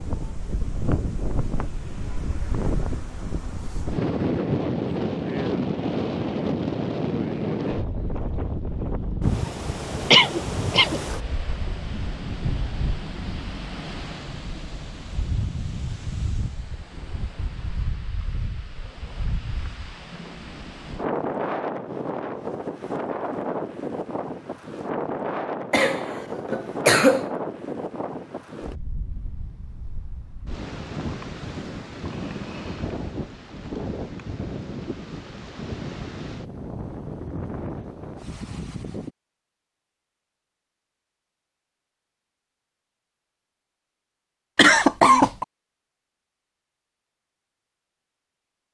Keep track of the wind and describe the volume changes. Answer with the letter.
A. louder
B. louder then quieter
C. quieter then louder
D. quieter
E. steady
D.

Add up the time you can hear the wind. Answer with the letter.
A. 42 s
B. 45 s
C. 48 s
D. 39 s
D.